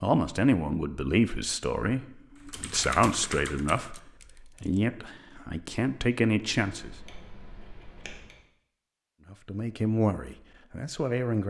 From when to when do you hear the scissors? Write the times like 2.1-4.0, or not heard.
6.6-8.4.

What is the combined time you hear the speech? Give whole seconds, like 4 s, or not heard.
9 s.